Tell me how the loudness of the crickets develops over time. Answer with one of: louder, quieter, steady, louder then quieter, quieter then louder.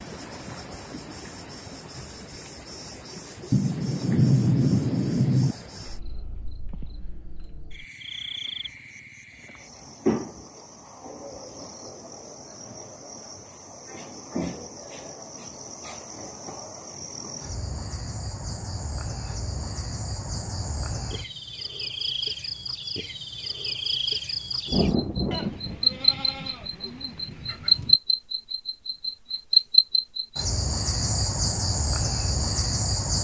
louder.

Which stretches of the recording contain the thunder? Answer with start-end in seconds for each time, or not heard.
3.5-5.5, 24.6-27.9.